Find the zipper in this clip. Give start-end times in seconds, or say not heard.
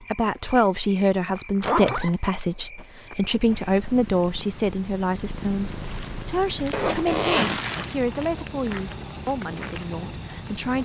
1.4-2.1, 6.7-7.9.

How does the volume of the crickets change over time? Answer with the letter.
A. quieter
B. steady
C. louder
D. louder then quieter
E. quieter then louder
E.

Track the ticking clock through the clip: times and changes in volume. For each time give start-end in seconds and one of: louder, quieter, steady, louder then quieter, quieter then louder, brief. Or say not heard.
not heard.